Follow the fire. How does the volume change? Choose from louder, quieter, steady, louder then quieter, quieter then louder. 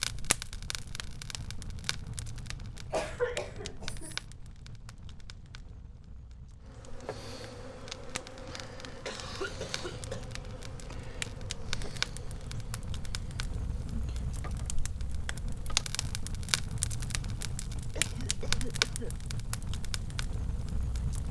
quieter then louder.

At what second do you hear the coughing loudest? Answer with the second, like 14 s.
3 s.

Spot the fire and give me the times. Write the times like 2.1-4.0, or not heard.
0.0-21.2.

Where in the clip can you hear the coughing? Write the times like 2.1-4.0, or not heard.
2.9-4.2, 9.1-10.2, 17.9-19.1.